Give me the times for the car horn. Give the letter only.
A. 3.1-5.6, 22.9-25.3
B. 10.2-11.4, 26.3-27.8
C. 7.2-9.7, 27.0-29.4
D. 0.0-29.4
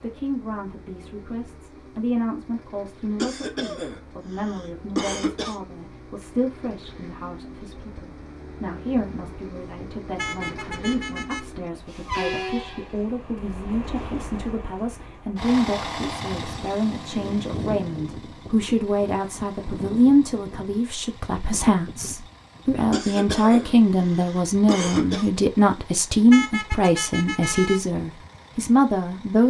B.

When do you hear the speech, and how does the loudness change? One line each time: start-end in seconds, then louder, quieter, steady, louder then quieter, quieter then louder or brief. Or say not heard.
0.0-29.4 louder.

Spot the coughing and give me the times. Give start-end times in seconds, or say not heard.
3.1-5.6, 22.9-25.3.